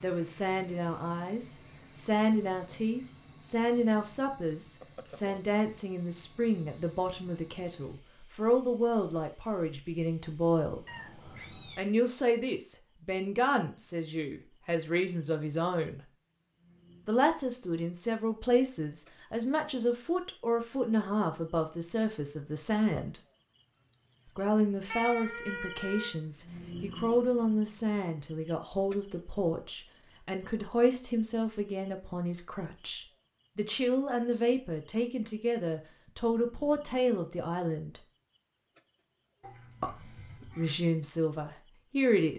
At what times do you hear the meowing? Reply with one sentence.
The meowing can be heard from 10.8 to 11.8 s, from 24.9 to 26.1 s and from 39.4 to 40.8 s.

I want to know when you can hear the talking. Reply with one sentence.
You can hear the talking from 0.0 to 10.8 s, from 11.8 to 16.0 s, from 17.1 to 23.2 s, from 24.4 to 38.0 s and from 39.8 to 42.3 s.